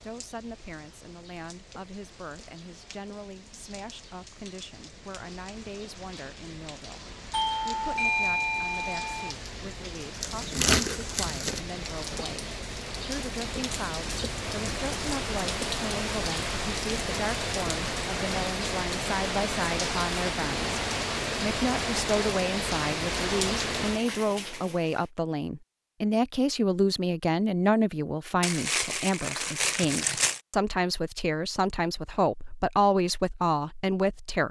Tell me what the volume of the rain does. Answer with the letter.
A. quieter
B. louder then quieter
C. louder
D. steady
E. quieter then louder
C.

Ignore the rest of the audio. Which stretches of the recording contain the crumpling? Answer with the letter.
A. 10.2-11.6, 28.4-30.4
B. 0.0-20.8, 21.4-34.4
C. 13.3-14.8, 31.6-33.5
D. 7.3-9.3
A.